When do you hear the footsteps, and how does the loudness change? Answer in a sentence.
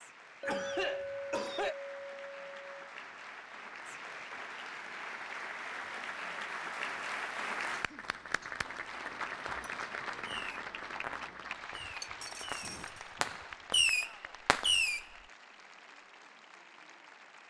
You can't hear the footsteps here.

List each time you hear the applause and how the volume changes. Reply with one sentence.
The applause can be heard from 0.0 to 17.4 s, getting louder then quieter.